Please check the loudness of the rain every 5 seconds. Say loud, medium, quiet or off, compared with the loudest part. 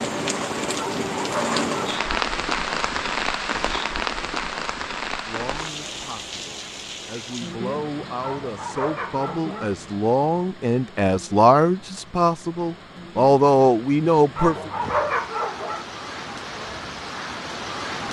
loud, medium, quiet, medium.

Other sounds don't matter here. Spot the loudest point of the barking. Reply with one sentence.
The loudest moment of the barking is at 15 seconds.